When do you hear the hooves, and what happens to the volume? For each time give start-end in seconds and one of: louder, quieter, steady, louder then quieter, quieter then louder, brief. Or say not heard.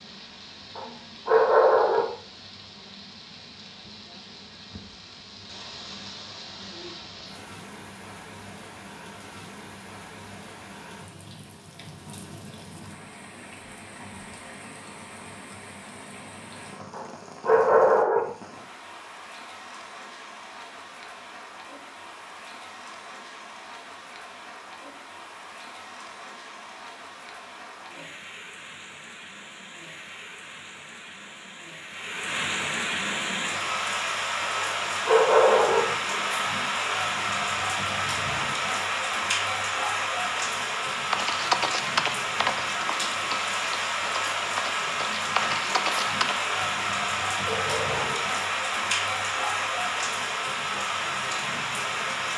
40.9-46.6 quieter then louder.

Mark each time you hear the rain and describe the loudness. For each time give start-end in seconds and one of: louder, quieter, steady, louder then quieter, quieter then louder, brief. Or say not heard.
0.0-52.3 louder.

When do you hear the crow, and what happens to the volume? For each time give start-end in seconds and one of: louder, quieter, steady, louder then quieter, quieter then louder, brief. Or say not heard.
not heard.